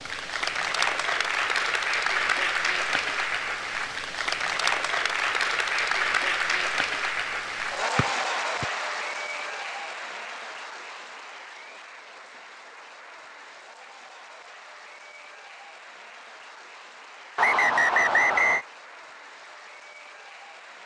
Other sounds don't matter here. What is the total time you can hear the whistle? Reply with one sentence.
The whistle can be heard for 2 seconds in total.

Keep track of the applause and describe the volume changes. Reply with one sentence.
The volume of the applause goes down.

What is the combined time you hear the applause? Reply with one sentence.
You can hear the applause for 21 seconds altogether.